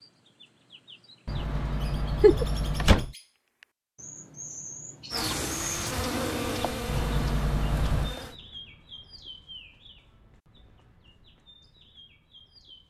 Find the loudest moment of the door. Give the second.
3 s.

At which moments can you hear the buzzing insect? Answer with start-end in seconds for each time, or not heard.
5.1-8.4.